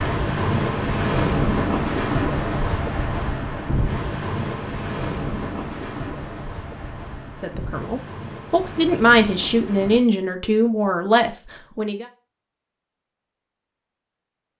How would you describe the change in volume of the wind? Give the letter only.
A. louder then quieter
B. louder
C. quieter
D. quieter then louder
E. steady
C.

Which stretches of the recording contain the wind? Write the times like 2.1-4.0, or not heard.
0.0-10.1.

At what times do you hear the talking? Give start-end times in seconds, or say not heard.
7.4-12.1.